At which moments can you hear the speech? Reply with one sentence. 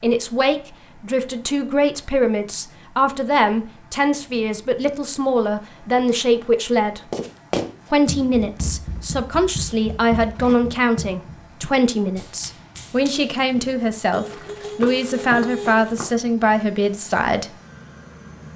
You can hear the speech from 0.0 to 7.1 s and from 7.9 to 17.5 s.